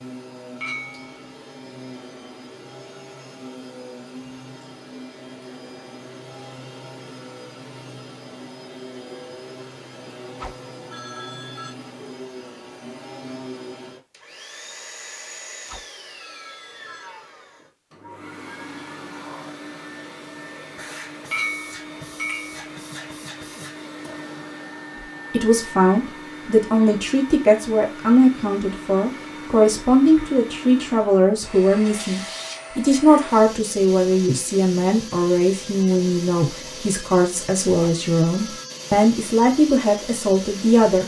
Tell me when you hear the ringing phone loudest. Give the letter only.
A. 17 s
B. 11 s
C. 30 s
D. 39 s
B.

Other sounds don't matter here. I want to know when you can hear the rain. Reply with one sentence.
You can't hear the rain here.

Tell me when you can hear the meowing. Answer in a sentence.
You can't hear the meowing here.